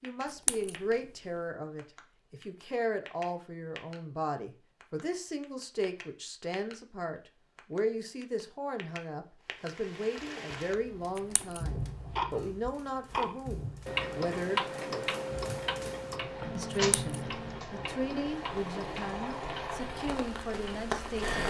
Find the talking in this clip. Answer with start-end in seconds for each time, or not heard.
0.0-15.1, 16.6-21.4.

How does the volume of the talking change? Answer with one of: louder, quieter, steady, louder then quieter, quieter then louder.
steady.